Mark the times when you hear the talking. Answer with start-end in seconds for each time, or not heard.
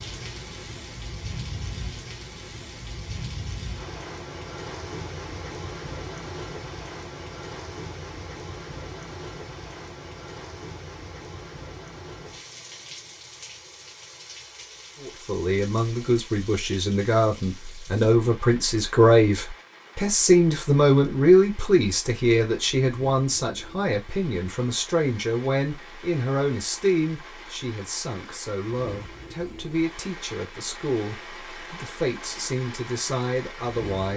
15.0-34.1.